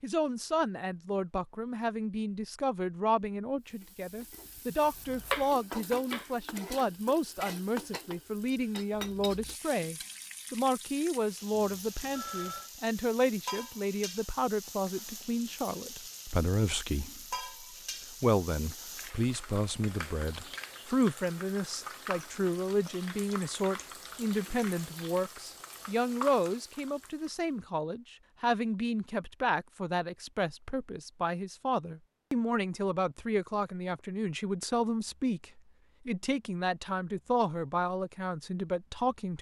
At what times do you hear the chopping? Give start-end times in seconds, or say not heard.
4.8-6.9.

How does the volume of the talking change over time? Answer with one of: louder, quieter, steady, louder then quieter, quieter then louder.
steady.